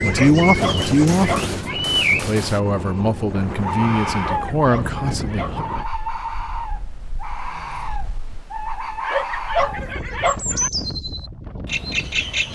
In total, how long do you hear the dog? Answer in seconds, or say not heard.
5 s.